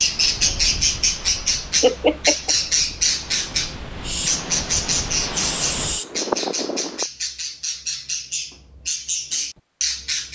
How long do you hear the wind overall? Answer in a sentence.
The wind can be heard for 7 seconds in total.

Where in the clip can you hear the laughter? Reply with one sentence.
The laughter can be heard from 1.8 to 2.5 s.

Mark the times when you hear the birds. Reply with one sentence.
You can hear the birds from 0.0 to 10.3 s.